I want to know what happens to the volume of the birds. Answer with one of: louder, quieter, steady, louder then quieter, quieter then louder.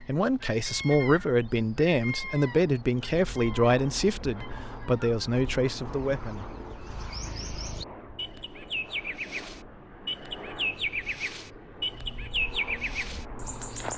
quieter then louder.